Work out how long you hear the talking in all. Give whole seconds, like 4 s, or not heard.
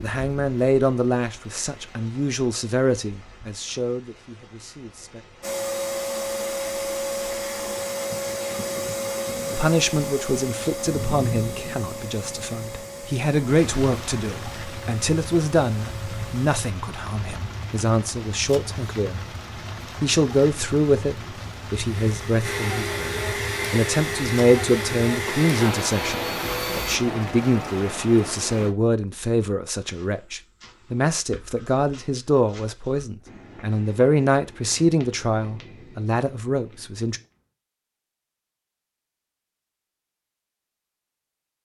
32 s.